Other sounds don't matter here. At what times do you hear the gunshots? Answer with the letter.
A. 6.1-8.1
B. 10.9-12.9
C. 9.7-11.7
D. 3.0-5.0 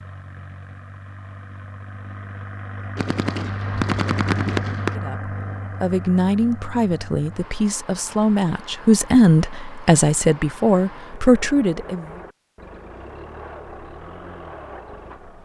D.